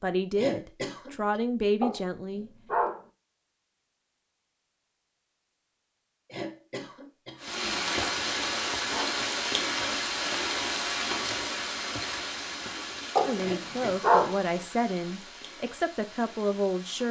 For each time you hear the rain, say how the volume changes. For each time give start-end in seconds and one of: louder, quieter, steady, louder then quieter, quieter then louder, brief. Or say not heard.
7.3-17.0 quieter.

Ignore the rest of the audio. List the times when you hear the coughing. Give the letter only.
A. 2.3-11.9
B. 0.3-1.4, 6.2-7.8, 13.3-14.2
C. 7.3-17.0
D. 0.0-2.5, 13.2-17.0
B.